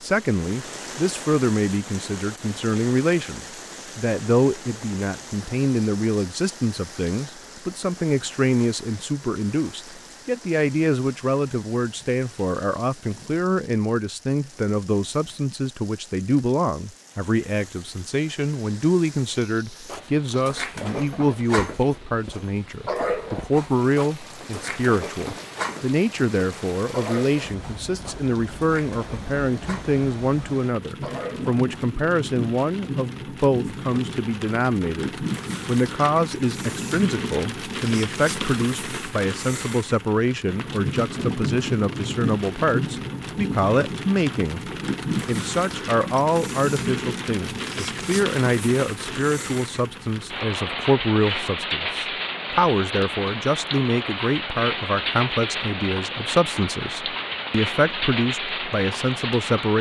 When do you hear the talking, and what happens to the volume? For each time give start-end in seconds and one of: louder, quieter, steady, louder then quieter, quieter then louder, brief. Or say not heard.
0.0-59.7 steady.